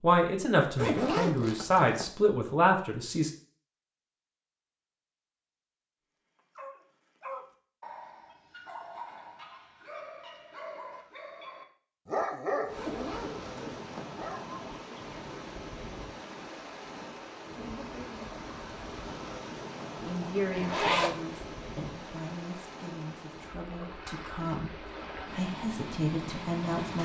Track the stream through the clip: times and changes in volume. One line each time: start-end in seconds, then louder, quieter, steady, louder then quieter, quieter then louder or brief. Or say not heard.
12.7-27.0 steady.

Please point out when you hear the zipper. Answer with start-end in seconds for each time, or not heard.
0.8-2.1, 12.8-14.1, 20.6-21.1.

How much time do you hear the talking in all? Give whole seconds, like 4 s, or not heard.
10 s.